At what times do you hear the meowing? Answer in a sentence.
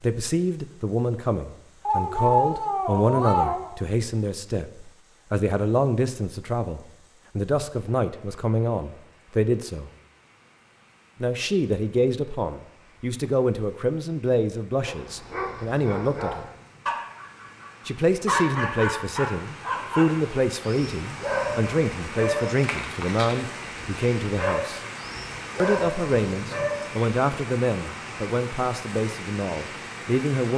You can hear the meowing from 1.9 to 3.7 s.